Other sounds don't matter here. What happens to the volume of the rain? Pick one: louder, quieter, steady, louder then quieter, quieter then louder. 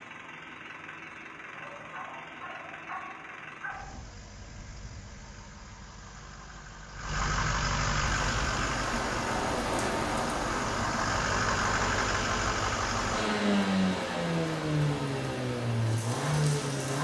quieter.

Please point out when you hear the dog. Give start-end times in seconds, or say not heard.
1.6-4.0.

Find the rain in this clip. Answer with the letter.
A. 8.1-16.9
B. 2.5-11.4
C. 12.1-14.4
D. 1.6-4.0
A.